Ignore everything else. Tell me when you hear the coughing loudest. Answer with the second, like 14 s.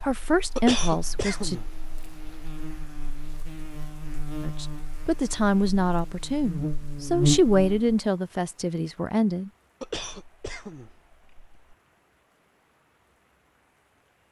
1 s.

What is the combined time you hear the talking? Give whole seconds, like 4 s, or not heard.
7 s.